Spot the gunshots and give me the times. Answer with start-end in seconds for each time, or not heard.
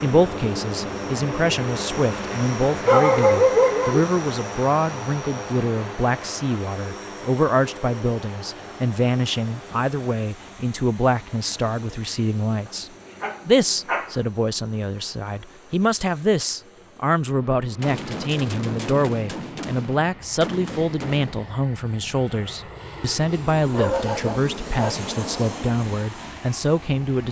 17.8-21.6.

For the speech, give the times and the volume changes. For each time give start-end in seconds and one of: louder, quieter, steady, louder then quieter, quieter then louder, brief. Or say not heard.
0.0-27.2 steady.